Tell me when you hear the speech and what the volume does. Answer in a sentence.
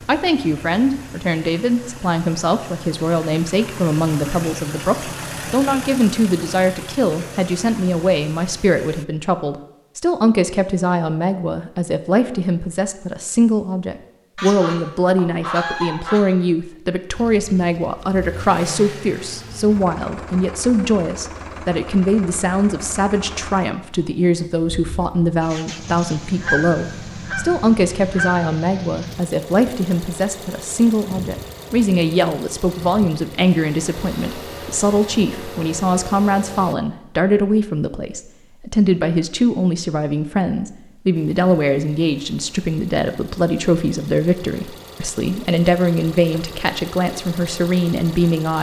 You can hear the speech from 0.1 to 48.5 s, at a steady volume.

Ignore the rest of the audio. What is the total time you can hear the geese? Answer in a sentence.
You can hear the geese for 4 seconds altogether.